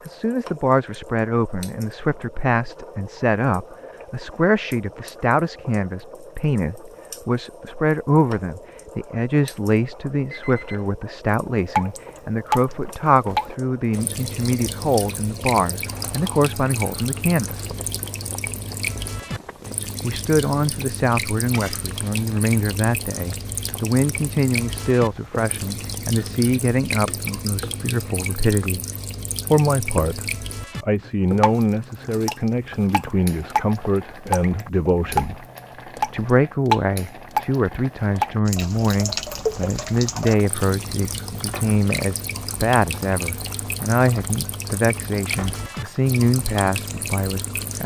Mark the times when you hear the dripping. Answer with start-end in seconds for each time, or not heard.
11.3-47.8.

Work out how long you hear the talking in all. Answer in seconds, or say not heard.
44 s.